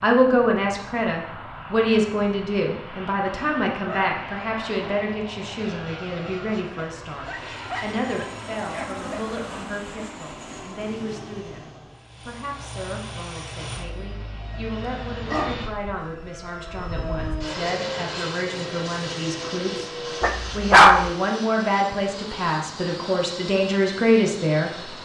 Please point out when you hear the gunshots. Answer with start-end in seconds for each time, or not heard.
not heard.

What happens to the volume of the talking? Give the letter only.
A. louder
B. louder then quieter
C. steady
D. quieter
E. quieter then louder
E.